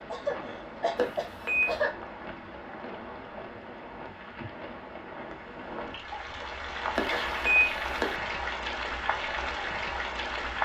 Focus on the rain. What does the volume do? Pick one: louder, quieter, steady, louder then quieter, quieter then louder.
louder.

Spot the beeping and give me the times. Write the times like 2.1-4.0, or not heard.
0.9-1.8, 7.0-8.2.